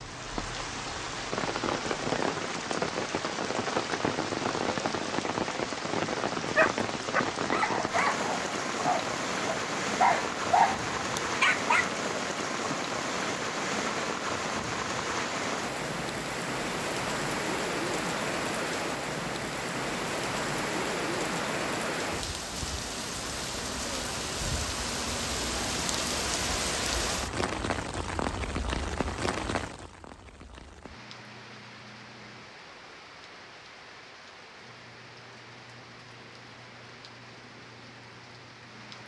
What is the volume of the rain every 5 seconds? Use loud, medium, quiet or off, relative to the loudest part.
loud, loud, loud, loud, loud, loud, quiet, quiet.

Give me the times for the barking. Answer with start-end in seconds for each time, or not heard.
6.5-11.9.